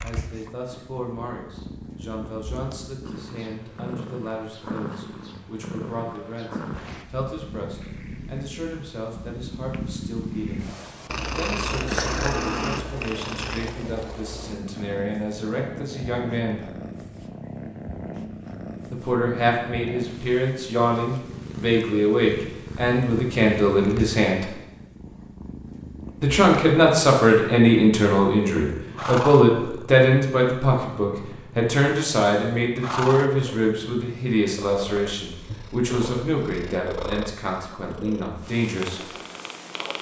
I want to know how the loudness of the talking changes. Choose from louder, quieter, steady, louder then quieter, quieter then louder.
louder then quieter.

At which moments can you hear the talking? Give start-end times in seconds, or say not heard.
0.0-10.7, 11.3-16.6, 18.9-24.4, 26.2-39.1.